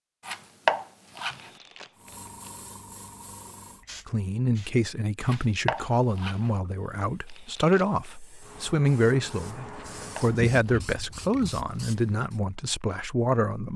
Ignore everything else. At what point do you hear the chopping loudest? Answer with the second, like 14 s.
1 s.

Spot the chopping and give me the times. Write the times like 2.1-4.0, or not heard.
0.2-1.5, 5.2-6.5, 9.7-10.9.